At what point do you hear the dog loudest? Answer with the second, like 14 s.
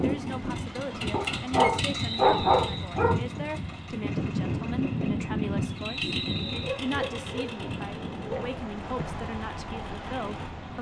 2 s.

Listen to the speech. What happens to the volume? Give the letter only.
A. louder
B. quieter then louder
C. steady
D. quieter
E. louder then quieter
C.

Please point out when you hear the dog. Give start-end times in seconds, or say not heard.
1.1-3.1, 6.4-8.6.